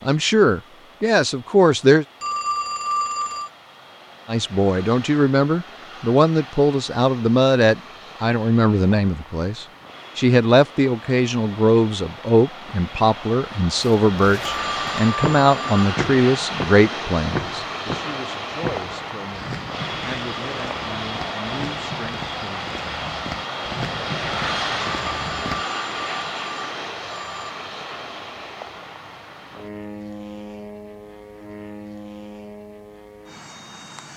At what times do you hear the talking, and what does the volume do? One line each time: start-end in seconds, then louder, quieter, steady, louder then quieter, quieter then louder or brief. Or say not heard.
0.0-2.0 brief
4.2-22.6 quieter.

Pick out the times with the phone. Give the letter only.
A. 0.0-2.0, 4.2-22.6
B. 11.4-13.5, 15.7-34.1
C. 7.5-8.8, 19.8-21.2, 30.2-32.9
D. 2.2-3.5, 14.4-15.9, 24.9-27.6
D.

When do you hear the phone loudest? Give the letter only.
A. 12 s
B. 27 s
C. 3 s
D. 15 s
C.